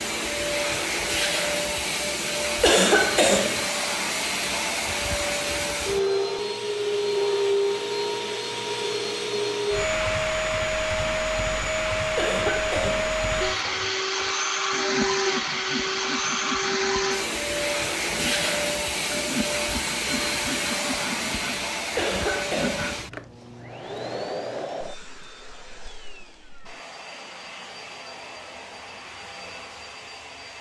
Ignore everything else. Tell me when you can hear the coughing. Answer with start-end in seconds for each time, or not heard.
2.6-3.6, 12.2-13.2, 21.9-23.0.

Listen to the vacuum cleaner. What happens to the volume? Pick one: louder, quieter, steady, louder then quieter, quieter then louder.
quieter.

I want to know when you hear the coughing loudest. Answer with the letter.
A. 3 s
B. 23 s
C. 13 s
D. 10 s
A.